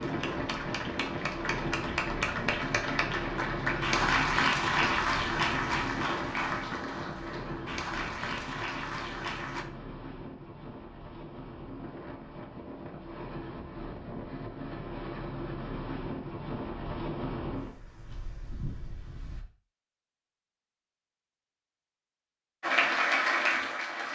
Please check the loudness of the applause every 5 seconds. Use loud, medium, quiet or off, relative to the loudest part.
loud, medium, off, off, loud.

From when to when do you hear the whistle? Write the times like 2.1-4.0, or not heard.
not heard.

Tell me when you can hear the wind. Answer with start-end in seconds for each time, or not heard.
0.0-19.4.